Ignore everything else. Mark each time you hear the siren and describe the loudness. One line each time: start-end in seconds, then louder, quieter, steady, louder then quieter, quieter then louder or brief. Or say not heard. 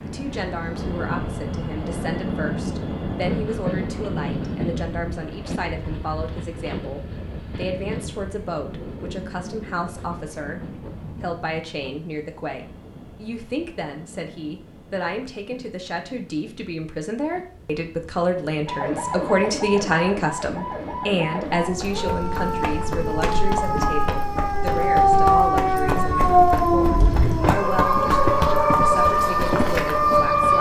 18.6-30.5 louder.